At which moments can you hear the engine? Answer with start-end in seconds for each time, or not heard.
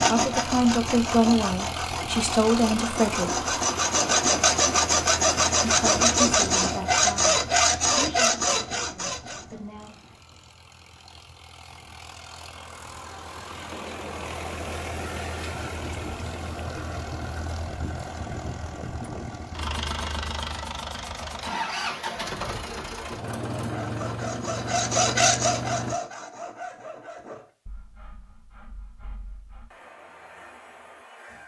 0.0-25.9.